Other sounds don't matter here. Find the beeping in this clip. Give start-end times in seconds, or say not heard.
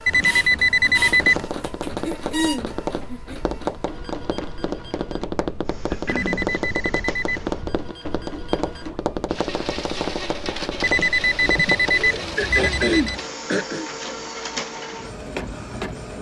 0.1-1.5, 6.0-7.5, 10.8-13.2.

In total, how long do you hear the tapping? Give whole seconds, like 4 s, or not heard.
11 s.